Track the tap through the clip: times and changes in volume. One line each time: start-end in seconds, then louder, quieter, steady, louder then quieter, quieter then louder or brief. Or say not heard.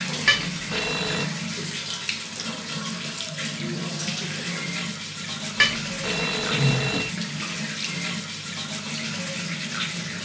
0.0-10.1 steady.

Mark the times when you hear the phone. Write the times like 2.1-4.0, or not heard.
0.2-1.3, 5.6-7.1.